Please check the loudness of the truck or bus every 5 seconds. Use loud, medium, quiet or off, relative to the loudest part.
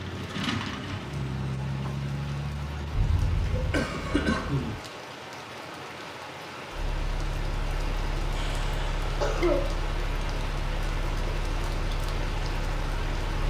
loud, medium, medium.